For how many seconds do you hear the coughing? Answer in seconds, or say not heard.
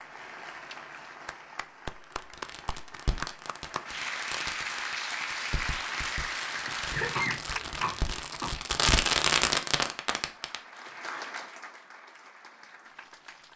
2 s.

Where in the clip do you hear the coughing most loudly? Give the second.
7 s.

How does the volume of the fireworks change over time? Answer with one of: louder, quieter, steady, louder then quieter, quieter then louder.
louder.